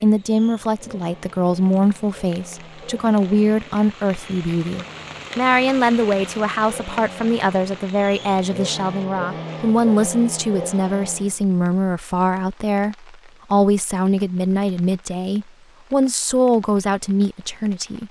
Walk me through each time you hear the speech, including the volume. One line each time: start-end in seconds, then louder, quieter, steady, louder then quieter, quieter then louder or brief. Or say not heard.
0.0-18.0 steady.